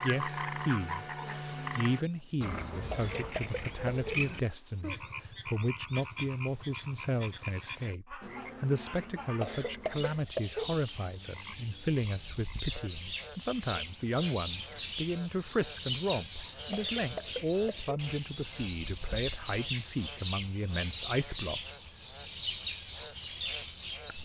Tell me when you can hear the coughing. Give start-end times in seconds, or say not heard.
2.9-4.2, 9.4-10.8, 16.7-18.1.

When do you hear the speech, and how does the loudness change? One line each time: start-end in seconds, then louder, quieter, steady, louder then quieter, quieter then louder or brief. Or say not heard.
0.0-1.1 brief
1.8-21.7 steady.